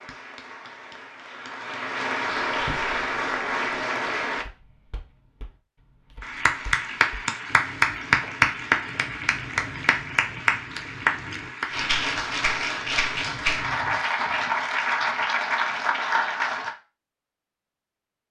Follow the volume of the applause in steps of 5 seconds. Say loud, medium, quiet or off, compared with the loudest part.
medium, loud, loud, loud.